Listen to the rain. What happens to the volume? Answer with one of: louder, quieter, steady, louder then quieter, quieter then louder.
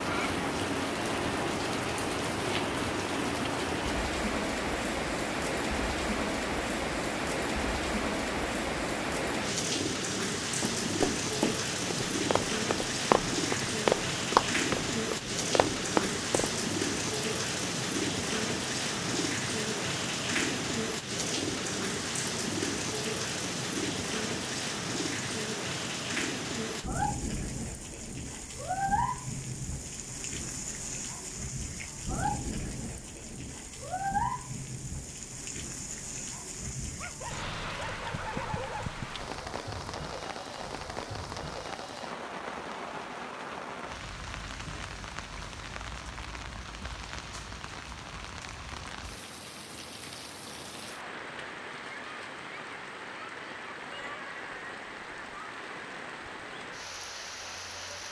quieter.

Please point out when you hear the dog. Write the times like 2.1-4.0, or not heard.
37.0-39.0.